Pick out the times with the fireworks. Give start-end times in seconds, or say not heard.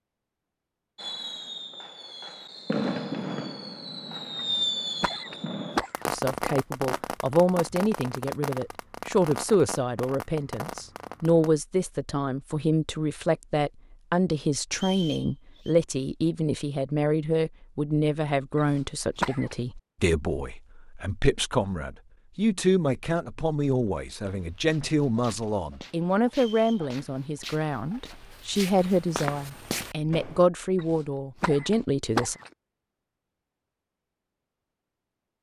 0.9-11.5.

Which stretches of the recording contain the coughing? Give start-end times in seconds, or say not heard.
4.3-6.1, 18.6-19.6, 30.8-32.5.